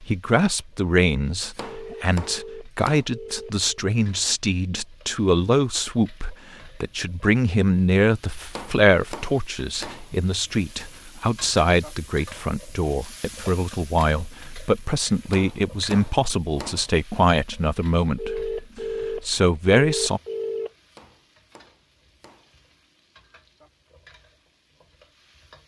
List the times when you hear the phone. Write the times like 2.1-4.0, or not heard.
1.6-3.7, 18.1-20.7.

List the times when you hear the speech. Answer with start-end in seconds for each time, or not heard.
0.0-20.2.